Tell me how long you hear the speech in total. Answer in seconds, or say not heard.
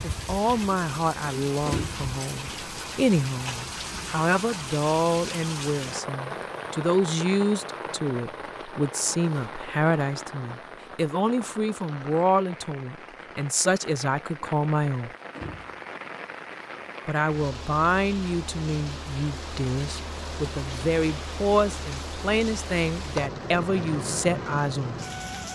23 s.